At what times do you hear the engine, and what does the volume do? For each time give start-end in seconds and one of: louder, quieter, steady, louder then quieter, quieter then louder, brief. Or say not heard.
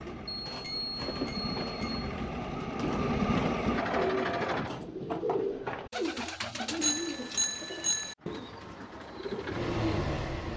0.0-4.7 louder
8.2-10.5 brief.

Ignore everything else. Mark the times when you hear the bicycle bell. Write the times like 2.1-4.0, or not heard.
0.5-2.1, 6.8-8.2.